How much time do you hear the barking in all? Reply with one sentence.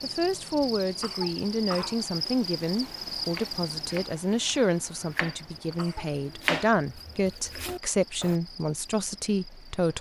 The barking can't be heard in this clip.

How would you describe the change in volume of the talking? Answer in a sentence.
The loudness of the talking stays about the same.